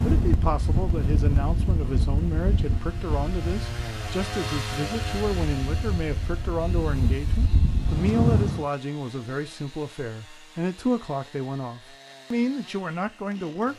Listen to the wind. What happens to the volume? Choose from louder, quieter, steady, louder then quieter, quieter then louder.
quieter then louder.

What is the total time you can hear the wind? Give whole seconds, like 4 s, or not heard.
9 s.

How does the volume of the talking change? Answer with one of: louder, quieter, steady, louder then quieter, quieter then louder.
steady.